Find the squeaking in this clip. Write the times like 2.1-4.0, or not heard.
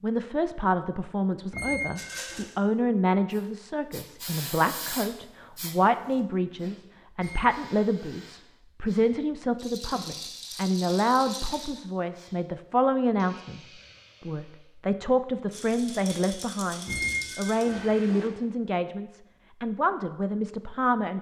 1.5-2.5, 7.2-8.3, 16.9-18.3.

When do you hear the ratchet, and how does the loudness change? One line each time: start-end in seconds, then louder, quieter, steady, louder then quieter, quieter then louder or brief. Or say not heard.
not heard.